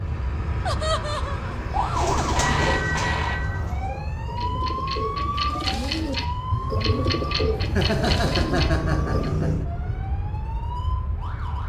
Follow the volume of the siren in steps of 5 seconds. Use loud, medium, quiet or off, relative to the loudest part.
loud, loud, medium.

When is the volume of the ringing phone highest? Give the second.
3 s.